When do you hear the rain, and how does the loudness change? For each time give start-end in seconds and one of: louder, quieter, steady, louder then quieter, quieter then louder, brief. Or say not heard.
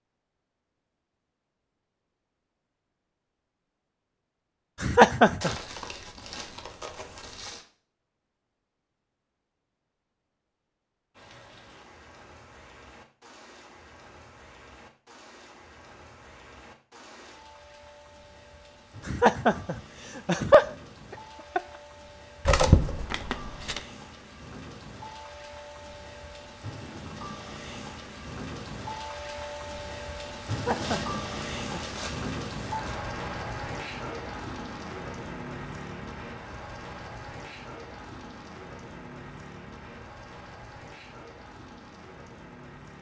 11.1-42.9 louder then quieter.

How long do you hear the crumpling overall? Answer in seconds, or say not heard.
6 s.